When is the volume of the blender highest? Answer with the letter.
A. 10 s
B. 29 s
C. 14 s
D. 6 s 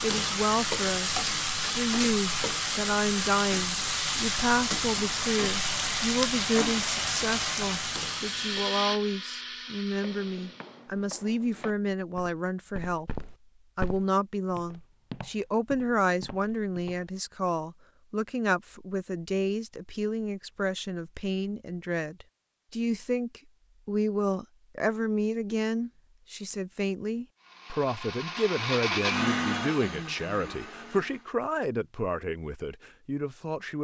B.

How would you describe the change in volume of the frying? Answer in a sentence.
The loudness of the frying stays about the same.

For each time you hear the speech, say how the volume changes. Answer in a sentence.
You can hear the speech from 0.0 to 33.8 s, at a steady volume.